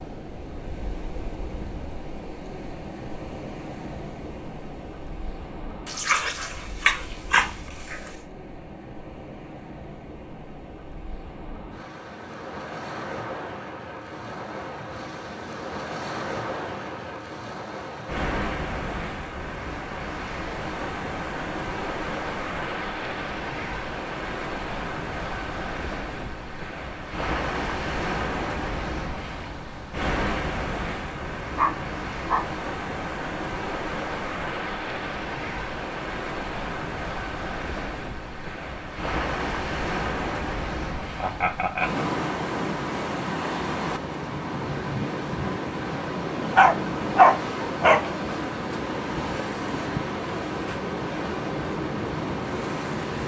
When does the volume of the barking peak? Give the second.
47 s.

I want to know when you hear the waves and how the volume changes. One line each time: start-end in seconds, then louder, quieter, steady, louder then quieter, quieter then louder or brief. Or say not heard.
0.0-53.2 louder.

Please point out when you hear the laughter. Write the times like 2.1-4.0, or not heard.
41.2-42.0.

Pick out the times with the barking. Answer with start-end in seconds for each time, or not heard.
5.8-8.0, 30.9-32.5, 46.5-48.0.